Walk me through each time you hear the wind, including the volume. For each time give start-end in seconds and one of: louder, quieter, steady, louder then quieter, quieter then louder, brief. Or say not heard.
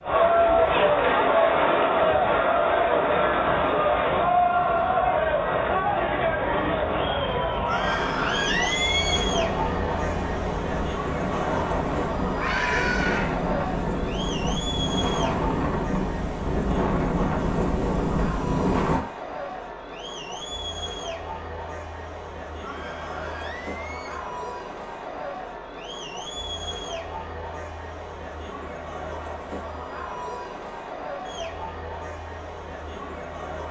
0.0-19.1 louder.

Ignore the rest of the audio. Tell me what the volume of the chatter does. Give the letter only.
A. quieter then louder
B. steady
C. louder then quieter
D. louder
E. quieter
E.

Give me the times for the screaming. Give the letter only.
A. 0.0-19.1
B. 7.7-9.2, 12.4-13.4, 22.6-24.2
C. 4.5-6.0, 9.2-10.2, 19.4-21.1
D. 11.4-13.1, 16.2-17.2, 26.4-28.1
B.